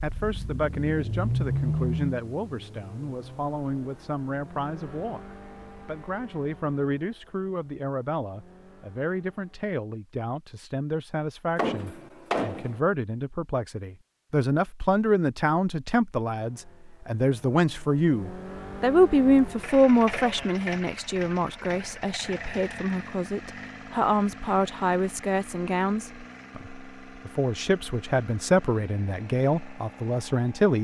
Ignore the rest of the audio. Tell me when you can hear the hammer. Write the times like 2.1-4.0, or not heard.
11.6-12.8.